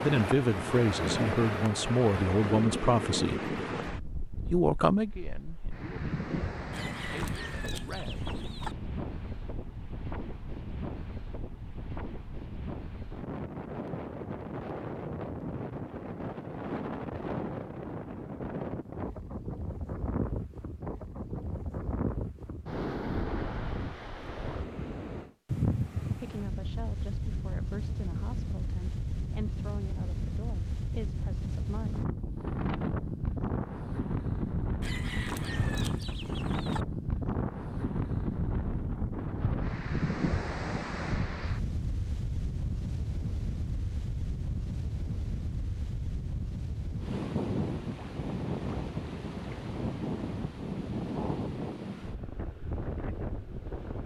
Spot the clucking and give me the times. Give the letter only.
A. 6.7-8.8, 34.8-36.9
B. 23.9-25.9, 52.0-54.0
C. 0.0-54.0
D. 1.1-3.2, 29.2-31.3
A.